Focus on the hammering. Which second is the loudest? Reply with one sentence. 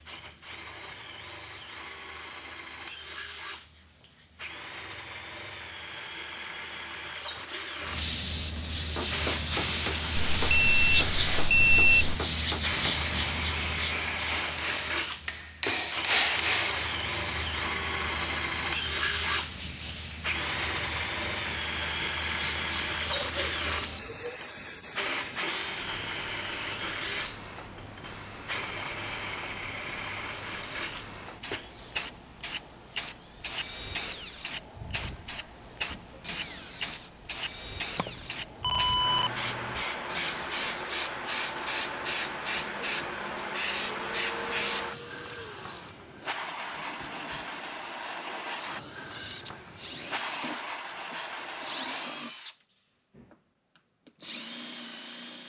The volume of the hammering peaks at 16 seconds.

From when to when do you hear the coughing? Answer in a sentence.
The coughing can't be heard in this clip.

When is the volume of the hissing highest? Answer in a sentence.
The loudest moment of the hissing is at 11 seconds.